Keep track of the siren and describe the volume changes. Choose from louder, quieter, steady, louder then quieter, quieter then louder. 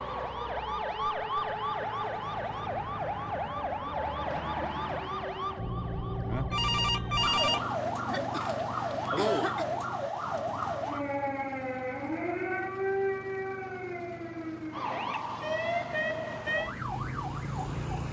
steady.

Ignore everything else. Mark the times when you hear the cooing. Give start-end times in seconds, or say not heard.
not heard.